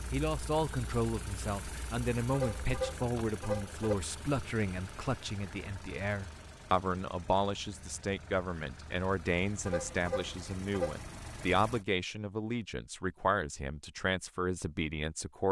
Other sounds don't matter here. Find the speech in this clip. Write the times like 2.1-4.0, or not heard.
0.1-15.4.